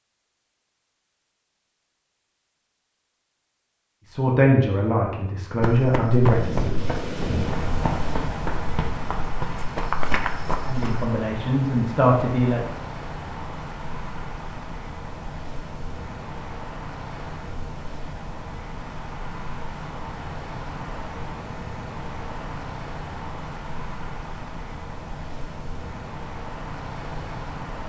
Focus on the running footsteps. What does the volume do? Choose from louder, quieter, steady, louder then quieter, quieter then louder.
quieter then louder.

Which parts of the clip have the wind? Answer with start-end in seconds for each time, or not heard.
6.2-27.8.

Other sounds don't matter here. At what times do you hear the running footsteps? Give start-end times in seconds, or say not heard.
5.6-11.1.